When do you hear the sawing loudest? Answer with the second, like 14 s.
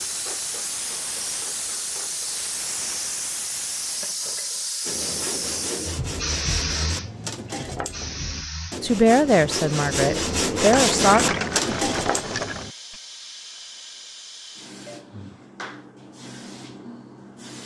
11 s.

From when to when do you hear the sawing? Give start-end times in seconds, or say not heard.
4.8-13.0.